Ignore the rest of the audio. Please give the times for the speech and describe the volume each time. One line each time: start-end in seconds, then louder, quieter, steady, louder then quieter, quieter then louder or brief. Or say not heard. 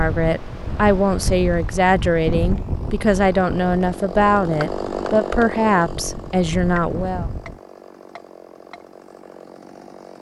0.0-7.2 steady.